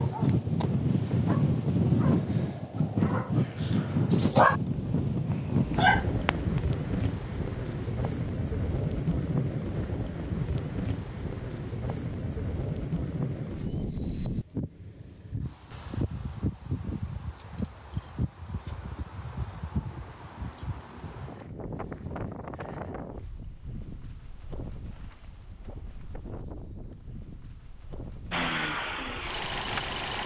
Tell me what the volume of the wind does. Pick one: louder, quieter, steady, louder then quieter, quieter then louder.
quieter.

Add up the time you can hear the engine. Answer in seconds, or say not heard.
2 s.